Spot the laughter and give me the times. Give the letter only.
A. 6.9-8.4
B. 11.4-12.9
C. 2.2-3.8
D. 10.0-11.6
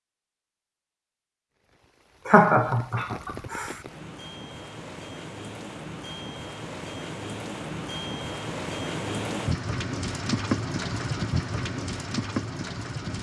C.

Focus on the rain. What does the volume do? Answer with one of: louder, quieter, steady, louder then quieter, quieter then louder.
louder.